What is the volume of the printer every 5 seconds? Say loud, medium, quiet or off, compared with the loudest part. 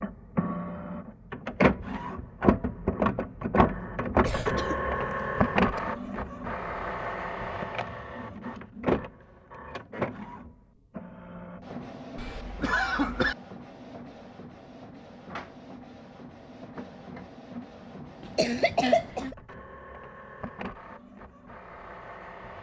loud, loud, quiet, quiet, quiet.